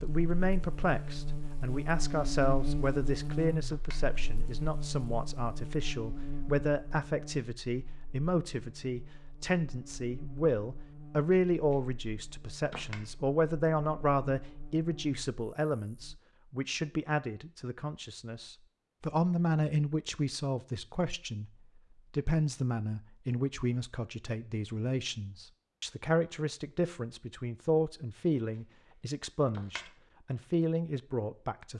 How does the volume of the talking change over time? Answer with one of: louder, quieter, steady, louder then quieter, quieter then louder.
steady.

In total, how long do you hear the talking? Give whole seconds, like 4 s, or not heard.
31 s.